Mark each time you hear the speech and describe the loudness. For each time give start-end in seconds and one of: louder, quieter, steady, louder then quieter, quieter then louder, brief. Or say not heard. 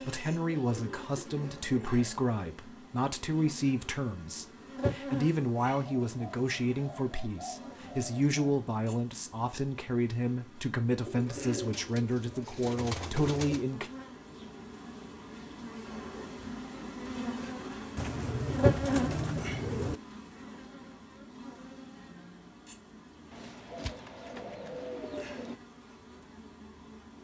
0.0-13.9 steady.